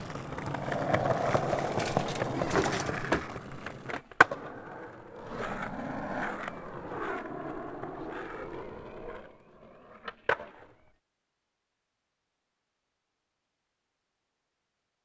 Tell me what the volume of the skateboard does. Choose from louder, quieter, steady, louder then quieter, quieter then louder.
quieter.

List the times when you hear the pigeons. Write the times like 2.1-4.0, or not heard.
1.4-3.2.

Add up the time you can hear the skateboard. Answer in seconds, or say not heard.
11 s.